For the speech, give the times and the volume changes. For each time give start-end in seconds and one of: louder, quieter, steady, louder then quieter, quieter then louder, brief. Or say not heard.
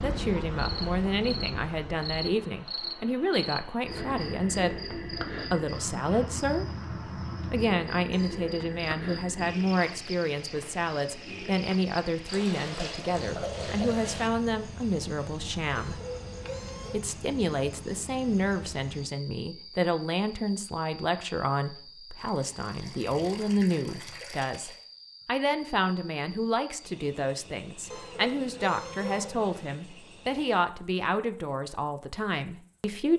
0.0-6.7 steady
7.5-16.0 steady
16.9-33.1 steady.